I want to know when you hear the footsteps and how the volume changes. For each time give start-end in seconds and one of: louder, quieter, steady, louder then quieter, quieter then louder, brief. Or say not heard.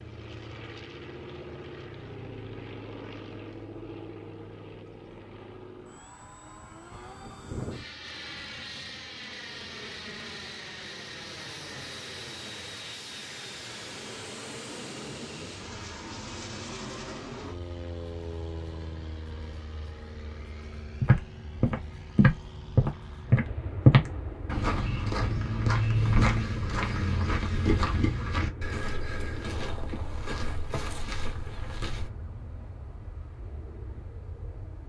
21.0-32.1 quieter.